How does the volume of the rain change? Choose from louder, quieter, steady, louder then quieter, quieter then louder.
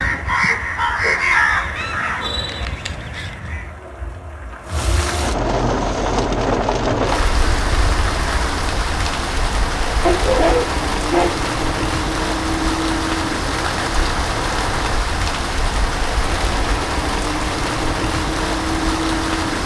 louder.